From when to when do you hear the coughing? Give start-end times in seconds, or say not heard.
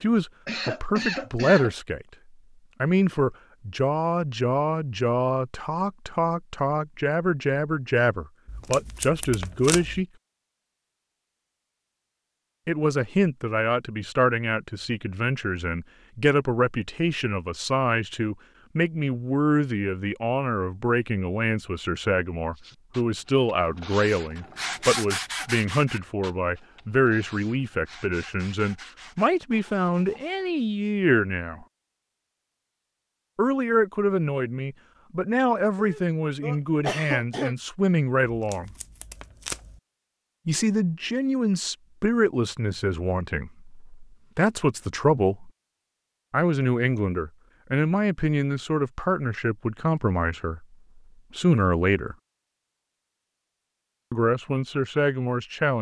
0.5-1.8, 35.8-37.5.